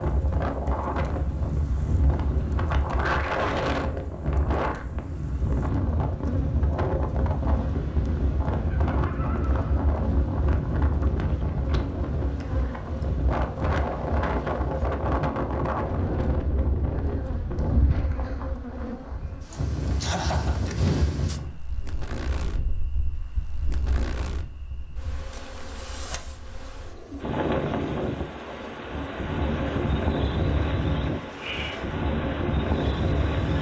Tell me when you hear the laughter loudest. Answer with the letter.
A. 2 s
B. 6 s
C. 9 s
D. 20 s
D.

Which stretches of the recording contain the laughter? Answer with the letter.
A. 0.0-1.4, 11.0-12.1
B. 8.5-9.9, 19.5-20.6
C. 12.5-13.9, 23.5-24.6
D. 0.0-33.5
B.